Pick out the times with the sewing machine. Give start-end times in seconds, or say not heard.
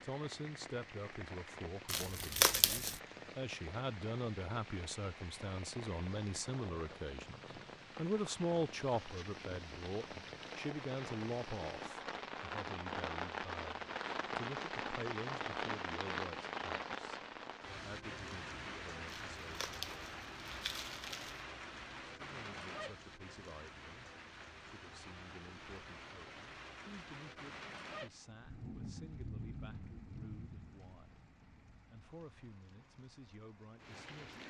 not heard.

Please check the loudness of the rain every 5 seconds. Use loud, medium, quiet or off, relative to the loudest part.
medium, medium, loud, loud, medium, medium, quiet.